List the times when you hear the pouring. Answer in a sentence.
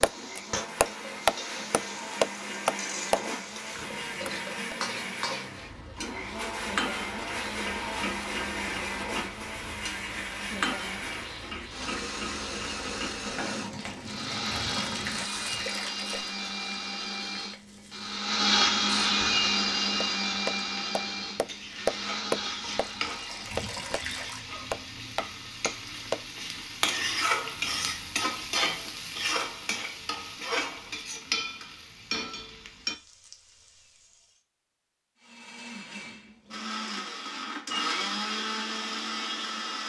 The pouring can be heard from 13.7 to 16.4 s and from 22.7 to 24.4 s.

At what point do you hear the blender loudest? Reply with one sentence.
The volume of the blender peaks at 19 seconds.